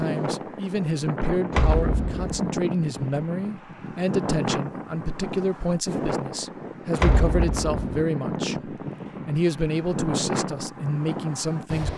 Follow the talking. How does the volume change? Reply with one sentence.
The loudness of the talking stays about the same.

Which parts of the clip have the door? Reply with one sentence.
The door can be heard from 1.5 to 2.4 s and from 7.0 to 8.1 s.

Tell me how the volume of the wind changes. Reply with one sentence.
The volume of the wind stays about the same.